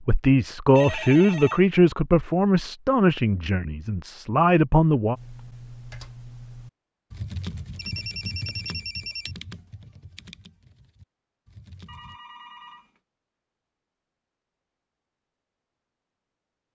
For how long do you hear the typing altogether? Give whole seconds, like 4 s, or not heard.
7 s.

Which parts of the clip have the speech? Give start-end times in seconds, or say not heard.
0.1-5.2.